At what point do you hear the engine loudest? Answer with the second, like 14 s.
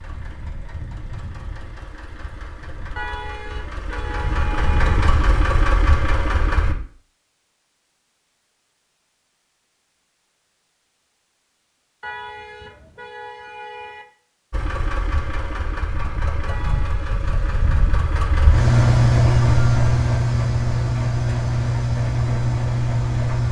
19 s.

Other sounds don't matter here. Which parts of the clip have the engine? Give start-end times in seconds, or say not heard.
0.0-6.8, 14.5-23.4.